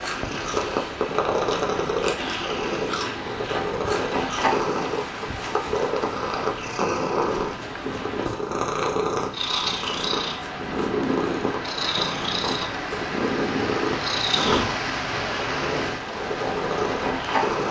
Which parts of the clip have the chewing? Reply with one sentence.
The chewing can be heard from 0.0 to 4.6 s.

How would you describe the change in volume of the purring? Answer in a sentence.
The volume of the purring stays about the same.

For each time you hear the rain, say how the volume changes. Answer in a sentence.
The rain can be heard from 0.0 to 17.6 s, getting louder.